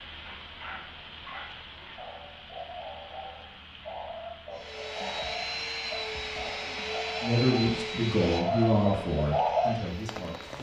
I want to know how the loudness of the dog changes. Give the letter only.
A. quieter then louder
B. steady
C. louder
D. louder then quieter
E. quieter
C.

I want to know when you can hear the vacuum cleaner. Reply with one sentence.
The vacuum cleaner can be heard from 4.5 to 10.5 s.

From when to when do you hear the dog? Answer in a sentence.
You can hear the dog from 0.2 to 9.8 s.